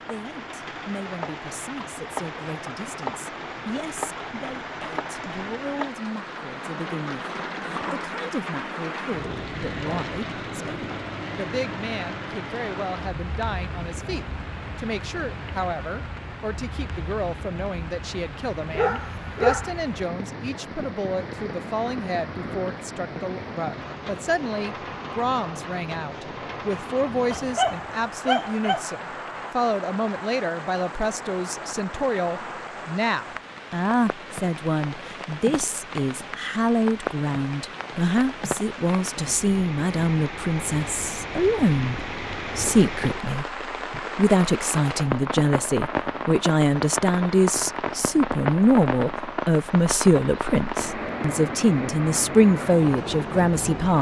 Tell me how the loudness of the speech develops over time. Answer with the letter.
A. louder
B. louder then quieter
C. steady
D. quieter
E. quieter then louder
A.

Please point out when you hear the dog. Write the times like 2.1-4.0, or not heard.
18.7-19.7, 27.3-28.8.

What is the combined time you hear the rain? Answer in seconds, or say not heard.
54 s.